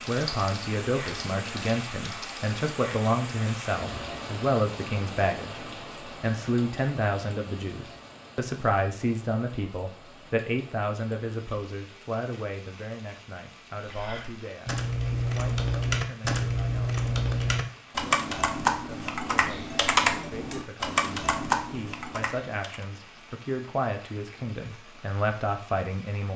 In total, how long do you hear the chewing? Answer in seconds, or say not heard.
not heard.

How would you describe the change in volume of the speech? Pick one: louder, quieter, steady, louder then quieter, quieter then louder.
quieter then louder.